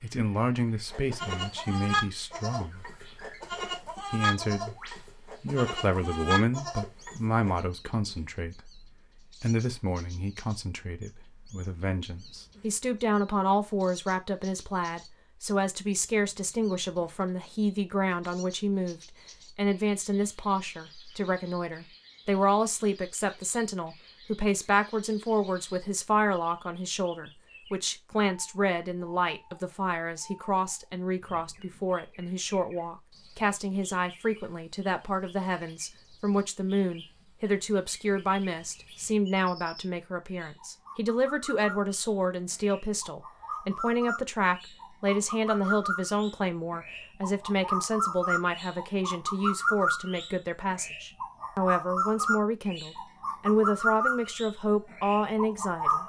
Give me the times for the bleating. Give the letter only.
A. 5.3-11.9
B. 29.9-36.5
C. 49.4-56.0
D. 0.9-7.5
D.